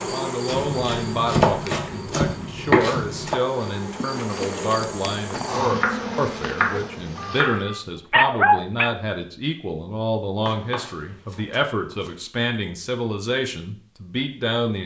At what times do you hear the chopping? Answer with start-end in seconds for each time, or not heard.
0.5-3.4, 5.7-7.6, 10.4-12.2.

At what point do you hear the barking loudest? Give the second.
8 s.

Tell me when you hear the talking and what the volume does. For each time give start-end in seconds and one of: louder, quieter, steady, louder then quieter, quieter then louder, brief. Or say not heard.
0.0-14.8 steady.